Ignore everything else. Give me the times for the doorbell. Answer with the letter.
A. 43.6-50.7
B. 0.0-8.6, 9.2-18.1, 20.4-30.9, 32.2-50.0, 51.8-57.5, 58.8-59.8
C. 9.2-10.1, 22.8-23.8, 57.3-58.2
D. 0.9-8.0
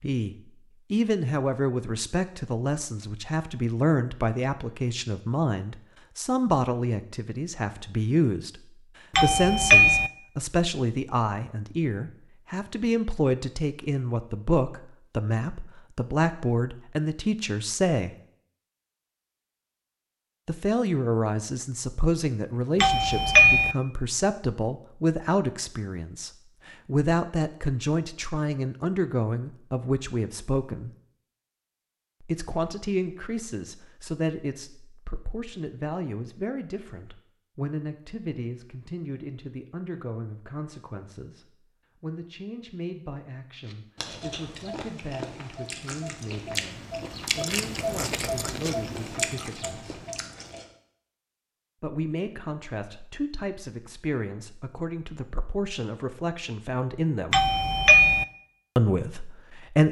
C.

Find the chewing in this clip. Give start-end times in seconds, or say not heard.
43.6-50.7.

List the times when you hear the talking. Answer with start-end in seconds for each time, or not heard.
0.0-8.6, 9.2-18.1, 20.4-30.9, 32.2-50.0, 51.8-57.5, 58.8-59.8.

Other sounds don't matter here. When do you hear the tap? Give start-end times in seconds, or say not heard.
not heard.